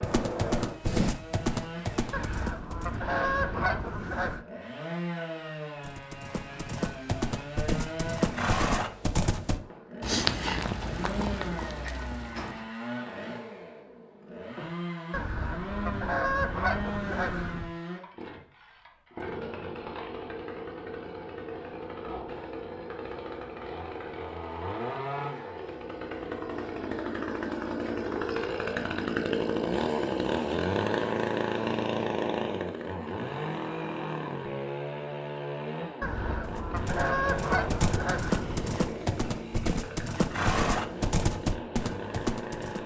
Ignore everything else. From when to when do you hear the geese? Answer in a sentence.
You can hear the geese from 2.1 to 4.5 s, from 15.1 to 17.7 s and from 36.0 to 38.8 s.